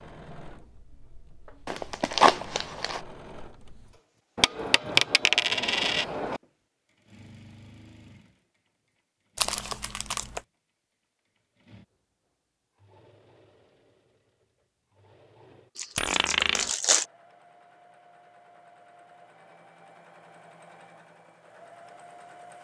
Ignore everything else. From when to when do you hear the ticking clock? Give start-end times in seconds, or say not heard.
not heard.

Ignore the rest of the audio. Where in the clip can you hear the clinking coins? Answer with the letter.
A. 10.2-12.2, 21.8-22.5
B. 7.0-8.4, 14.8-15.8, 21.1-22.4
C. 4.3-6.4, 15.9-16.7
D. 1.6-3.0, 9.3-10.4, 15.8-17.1
C.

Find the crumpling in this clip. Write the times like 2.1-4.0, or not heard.
1.6-3.0, 9.3-10.4, 15.8-17.1.